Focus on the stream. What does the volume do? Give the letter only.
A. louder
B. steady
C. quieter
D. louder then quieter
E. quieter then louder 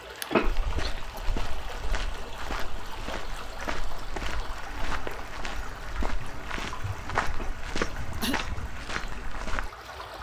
B.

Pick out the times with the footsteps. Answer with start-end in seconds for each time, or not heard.
0.4-9.7.